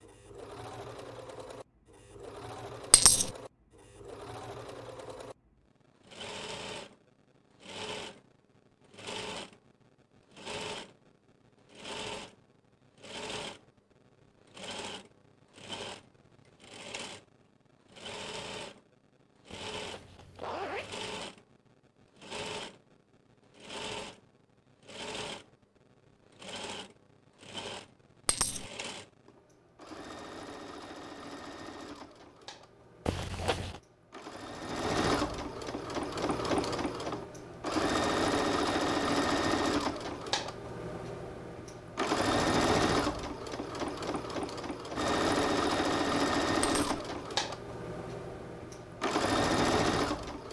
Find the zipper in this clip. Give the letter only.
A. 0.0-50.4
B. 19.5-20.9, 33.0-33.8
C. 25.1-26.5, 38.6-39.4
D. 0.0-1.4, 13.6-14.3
B.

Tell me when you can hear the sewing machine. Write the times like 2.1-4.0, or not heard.
0.0-50.4.